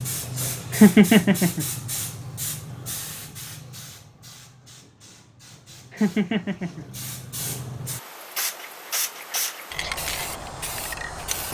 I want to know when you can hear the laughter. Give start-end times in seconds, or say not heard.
0.7-1.6, 5.9-6.8.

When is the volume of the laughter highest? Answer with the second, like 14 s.
1 s.